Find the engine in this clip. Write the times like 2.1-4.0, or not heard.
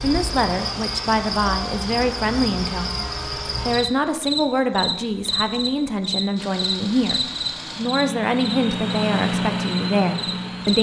6.3-10.7.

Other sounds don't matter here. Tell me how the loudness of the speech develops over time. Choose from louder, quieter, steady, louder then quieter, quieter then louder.
steady.